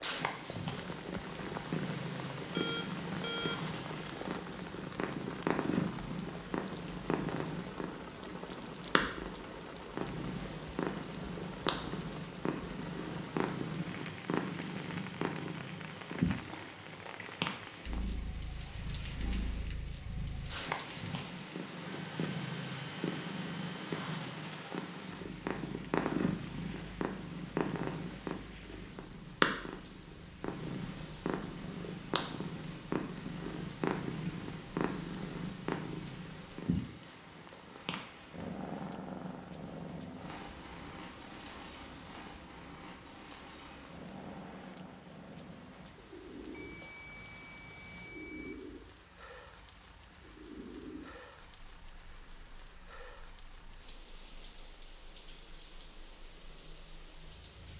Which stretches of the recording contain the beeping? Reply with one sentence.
The beeping can be heard from 2.5 to 3.6 s, from 21.9 to 24.2 s and from 46.5 to 48.5 s.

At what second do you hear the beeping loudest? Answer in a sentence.
The loudest moment of the beeping is at 3 seconds.